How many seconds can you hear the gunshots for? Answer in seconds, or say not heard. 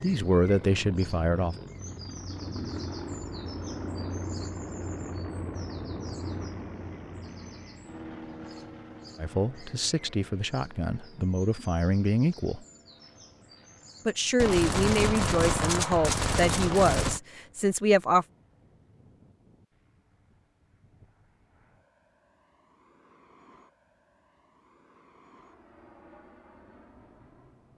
3 s.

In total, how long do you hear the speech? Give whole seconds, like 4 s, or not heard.
9 s.